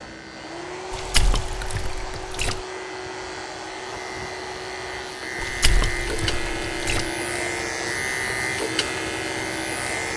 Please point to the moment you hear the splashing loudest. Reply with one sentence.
The volume of the splashing peaks at 1 second.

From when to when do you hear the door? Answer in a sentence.
You can't hear the door here.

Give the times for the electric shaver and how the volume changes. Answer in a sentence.
You can hear the electric shaver from 0.0 to 10.1 s, getting louder.